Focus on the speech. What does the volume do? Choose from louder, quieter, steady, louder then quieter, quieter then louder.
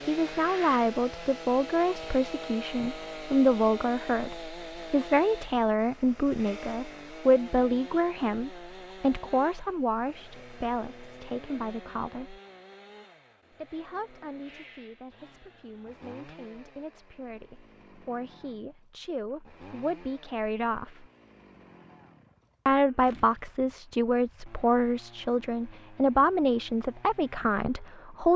quieter then louder.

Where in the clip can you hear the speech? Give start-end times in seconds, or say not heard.
0.1-12.4, 13.5-21.1, 22.6-28.3.